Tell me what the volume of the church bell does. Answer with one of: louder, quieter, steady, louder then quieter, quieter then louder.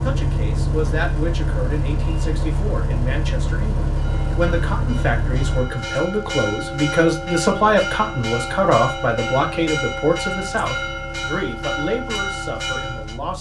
louder.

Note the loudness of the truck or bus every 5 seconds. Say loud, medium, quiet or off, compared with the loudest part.
loud, medium, quiet.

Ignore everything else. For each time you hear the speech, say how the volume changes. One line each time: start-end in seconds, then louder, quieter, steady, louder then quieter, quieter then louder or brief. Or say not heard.
0.0-13.3 louder then quieter.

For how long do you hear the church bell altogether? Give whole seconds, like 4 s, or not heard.
9 s.